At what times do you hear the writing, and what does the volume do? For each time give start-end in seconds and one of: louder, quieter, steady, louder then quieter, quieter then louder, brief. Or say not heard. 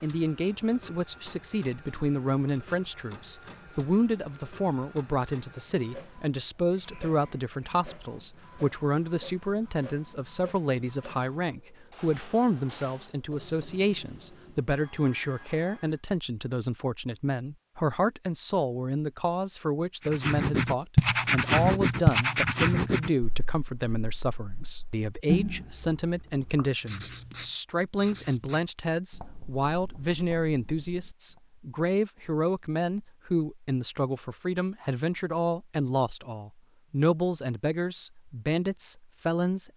20.1-31.4 quieter.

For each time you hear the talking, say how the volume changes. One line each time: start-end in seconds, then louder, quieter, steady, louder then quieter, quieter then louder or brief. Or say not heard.
0.0-39.7 steady.